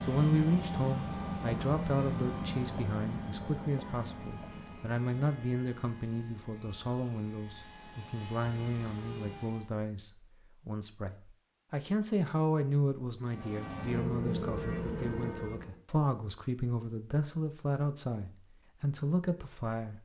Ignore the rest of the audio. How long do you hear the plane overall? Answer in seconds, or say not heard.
12 s.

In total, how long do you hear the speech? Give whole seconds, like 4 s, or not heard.
20 s.